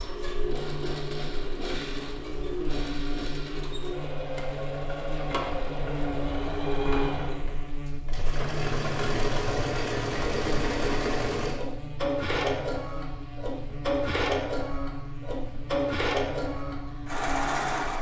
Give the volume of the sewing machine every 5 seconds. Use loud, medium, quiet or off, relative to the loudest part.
medium, loud, loud, loud.